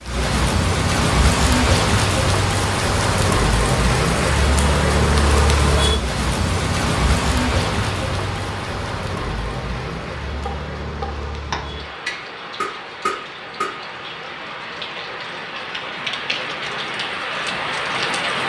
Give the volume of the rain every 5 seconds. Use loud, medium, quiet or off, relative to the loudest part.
loud, loud, quiet, medium.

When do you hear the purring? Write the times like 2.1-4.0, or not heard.
not heard.